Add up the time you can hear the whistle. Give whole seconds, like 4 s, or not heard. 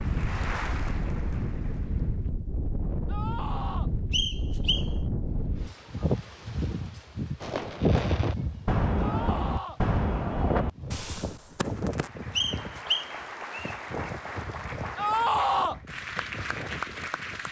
2 s.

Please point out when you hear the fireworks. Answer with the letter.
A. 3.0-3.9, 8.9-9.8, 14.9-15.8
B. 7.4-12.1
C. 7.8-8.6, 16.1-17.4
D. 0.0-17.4
B.